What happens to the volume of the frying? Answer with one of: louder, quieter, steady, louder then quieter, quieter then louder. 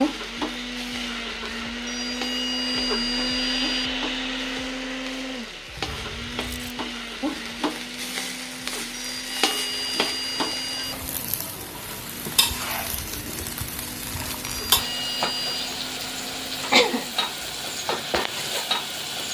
louder.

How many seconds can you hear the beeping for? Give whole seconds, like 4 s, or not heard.
5 s.